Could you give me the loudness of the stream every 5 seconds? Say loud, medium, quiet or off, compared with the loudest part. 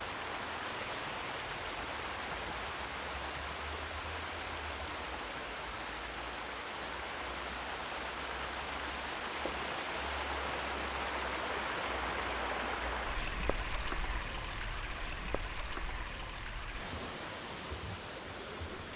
loud, loud, loud, medium.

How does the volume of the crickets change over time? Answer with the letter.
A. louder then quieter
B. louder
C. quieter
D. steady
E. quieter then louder
D.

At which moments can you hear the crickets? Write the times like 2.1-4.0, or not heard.
0.0-18.9.